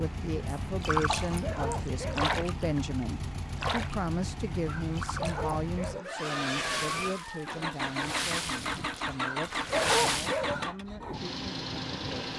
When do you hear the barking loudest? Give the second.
10 s.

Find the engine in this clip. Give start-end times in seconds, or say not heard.
0.0-12.3.